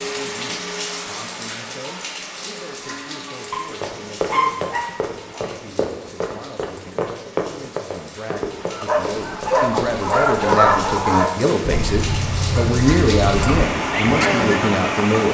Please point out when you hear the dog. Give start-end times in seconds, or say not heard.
3.5-5.4, 8.8-11.8.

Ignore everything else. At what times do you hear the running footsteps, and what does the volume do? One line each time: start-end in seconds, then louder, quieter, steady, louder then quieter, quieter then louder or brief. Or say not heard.
3.5-10.7 steady.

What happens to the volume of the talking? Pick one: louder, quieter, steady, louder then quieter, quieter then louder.
louder.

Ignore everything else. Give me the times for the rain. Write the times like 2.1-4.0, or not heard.
0.0-15.3.